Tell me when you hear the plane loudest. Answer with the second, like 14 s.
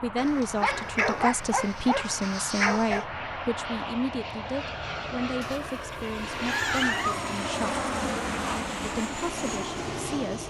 8 s.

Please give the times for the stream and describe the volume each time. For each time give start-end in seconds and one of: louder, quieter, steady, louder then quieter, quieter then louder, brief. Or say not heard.
not heard.